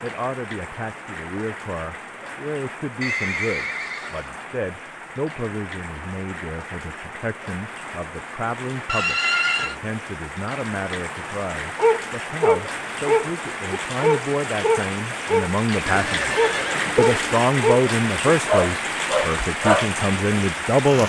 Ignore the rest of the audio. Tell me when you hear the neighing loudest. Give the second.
9 s.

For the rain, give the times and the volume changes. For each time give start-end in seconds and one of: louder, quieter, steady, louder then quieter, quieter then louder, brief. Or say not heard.
0.0-21.0 louder.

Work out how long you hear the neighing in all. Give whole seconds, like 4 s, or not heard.
4 s.